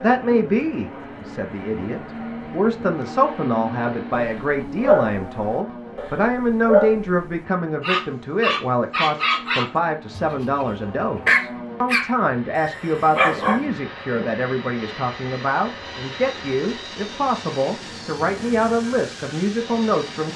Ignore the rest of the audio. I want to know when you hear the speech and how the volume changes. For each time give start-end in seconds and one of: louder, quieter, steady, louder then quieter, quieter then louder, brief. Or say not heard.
0.0-20.3 steady.